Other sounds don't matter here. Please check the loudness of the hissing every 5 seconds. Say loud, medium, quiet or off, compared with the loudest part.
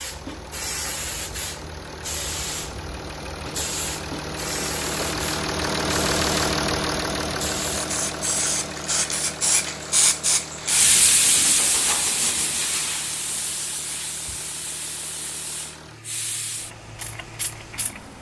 medium, loud, loud, quiet.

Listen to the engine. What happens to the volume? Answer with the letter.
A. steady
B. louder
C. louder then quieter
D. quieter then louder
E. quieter
C.